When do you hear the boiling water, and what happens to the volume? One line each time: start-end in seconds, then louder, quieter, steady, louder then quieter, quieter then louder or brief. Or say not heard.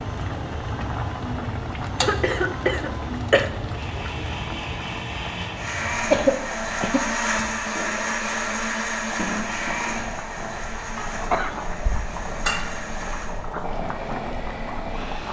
0.0-15.2 quieter then louder.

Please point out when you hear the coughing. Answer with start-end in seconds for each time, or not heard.
2.0-3.5, 6.1-7.1, 10.9-11.7.